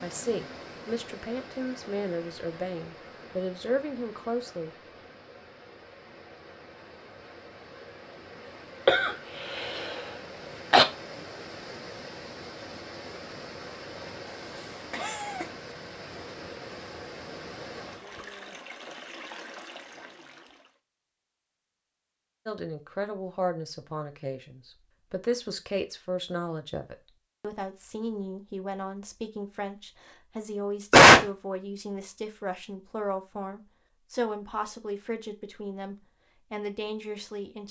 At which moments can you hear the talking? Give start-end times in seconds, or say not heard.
0.0-4.7, 22.4-37.6.